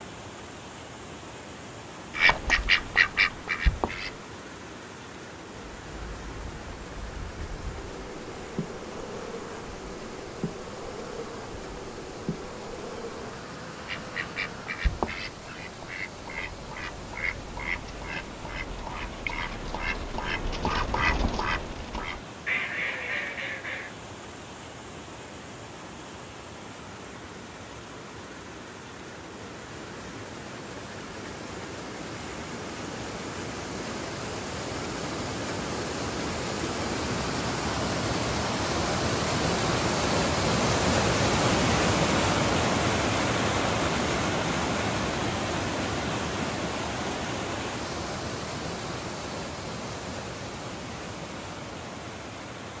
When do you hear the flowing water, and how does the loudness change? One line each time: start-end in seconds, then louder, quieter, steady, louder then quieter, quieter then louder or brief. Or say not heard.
0.0-52.7 louder.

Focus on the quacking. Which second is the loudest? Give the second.
3 s.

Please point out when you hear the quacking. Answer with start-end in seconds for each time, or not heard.
2.1-4.2, 13.8-23.9.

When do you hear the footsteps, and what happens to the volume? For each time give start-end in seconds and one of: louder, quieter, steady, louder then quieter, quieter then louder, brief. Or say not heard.
not heard.